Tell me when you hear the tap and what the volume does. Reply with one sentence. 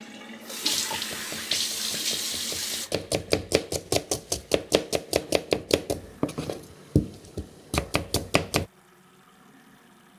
You can hear the tap from 0.0 to 10.1 s, getting quieter.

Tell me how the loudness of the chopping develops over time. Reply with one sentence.
The loudness of the chopping goes up.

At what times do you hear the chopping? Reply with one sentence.
You can hear the chopping from 0.7 to 8.7 s.